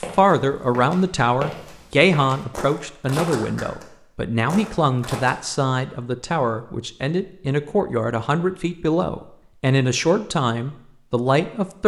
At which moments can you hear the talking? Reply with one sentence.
You can hear the talking from 0.0 to 11.8 s.